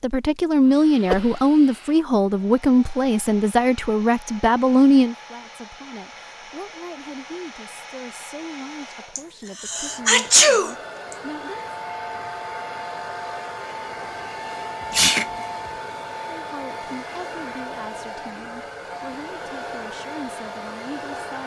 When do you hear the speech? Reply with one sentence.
The speech can be heard from 0.0 to 11.8 s and from 16.4 to 21.4 s.